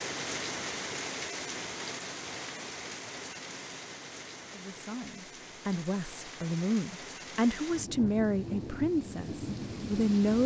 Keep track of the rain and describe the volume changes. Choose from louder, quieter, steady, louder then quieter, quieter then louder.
quieter then louder.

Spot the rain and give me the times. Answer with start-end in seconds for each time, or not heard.
0.0-10.4.